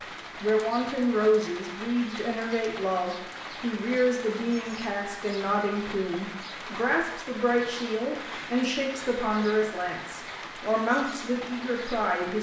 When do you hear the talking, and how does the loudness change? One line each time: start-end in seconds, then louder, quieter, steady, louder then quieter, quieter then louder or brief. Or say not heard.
0.4-12.3 steady.